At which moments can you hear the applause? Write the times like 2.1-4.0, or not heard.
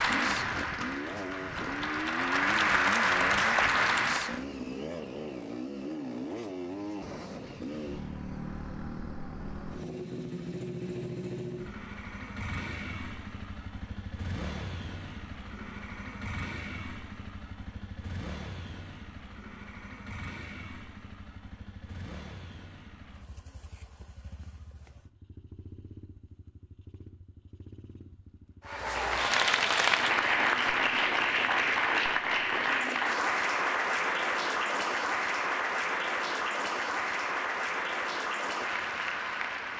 0.0-4.5, 28.6-39.7.